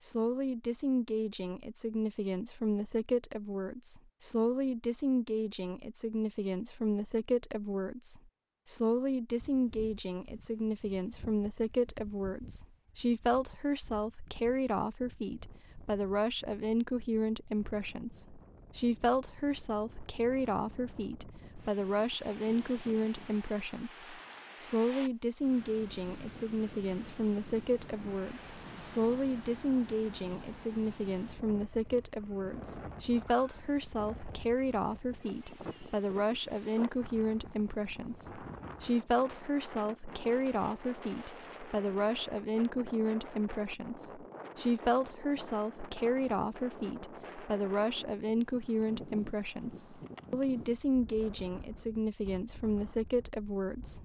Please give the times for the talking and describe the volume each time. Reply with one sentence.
The talking can be heard from 0.0 to 54.0 s, at a steady volume.